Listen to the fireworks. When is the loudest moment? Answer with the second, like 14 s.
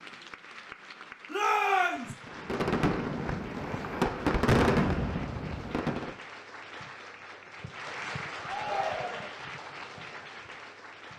5 s.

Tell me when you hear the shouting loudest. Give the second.
2 s.